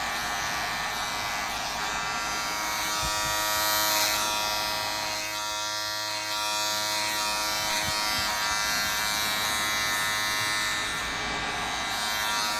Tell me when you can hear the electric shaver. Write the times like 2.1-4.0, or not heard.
0.0-12.5.